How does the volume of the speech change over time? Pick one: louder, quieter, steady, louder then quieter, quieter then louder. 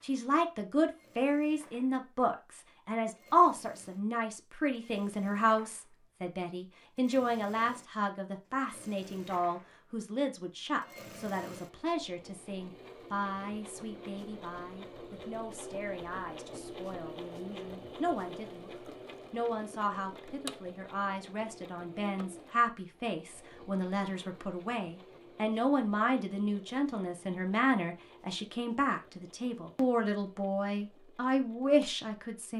quieter then louder.